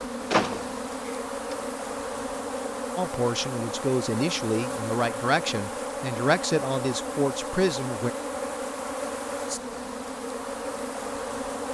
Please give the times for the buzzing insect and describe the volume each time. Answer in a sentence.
You can hear the buzzing insect from 0.0 to 11.6 s, at a steady volume.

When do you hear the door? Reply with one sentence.
The door can be heard from 0.3 to 1.6 s.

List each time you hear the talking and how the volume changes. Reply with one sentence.
You can hear the talking from 3.0 to 8.1 s, at a steady volume.